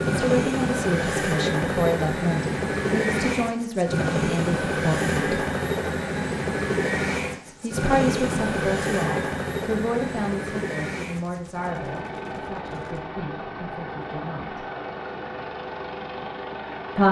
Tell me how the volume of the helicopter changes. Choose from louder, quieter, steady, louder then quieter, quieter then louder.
quieter.